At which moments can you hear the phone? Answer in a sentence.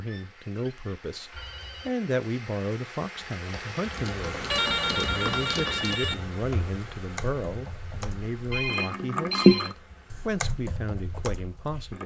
You can hear the phone from 0.1 to 1.9 s, from 4.5 to 6.2 s and from 8.5 to 9.8 s.